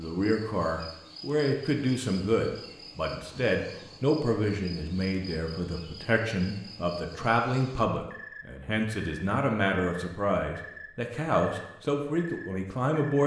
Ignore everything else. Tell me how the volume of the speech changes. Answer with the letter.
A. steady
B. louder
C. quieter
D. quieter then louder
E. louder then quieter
A.